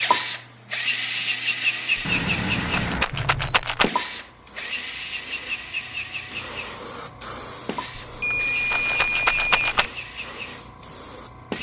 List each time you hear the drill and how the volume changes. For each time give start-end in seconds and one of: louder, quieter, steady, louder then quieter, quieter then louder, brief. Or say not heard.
0.0-11.5 quieter.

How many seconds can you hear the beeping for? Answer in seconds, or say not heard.
3 s.